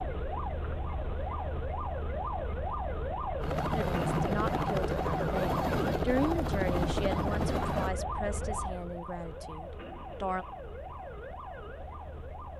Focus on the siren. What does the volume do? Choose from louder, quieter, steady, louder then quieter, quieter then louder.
quieter.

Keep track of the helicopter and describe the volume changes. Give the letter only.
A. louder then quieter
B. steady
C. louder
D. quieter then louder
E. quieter
B.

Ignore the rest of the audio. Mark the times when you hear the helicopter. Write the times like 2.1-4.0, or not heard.
3.4-8.0.